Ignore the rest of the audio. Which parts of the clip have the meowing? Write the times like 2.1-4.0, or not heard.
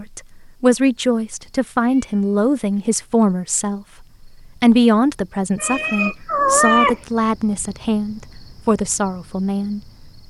1.8-3.2, 5.5-7.0.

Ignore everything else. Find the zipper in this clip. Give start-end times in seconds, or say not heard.
not heard.